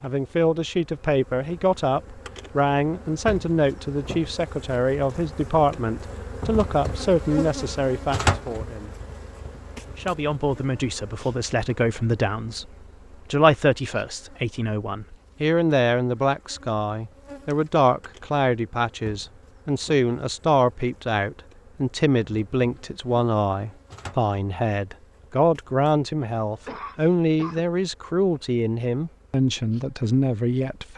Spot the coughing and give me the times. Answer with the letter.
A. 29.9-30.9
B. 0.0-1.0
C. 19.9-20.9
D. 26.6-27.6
D.